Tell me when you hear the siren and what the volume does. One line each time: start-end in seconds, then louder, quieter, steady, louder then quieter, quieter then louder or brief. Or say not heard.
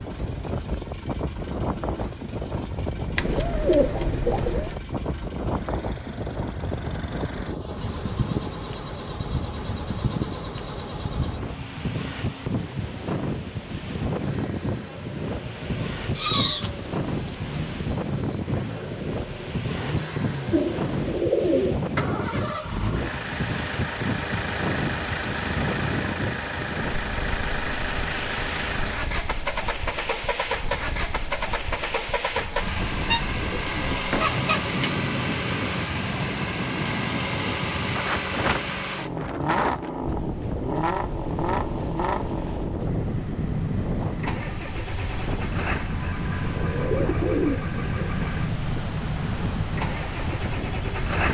not heard.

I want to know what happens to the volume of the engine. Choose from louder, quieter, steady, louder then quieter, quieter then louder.
louder.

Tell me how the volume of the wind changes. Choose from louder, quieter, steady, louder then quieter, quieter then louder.
steady.